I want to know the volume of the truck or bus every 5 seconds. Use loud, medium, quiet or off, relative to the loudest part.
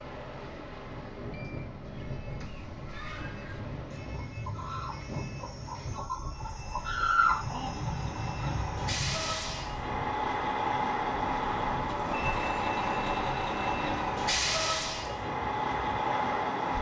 quiet, medium, loud, loud.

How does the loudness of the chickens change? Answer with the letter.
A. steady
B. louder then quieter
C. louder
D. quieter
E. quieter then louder
B.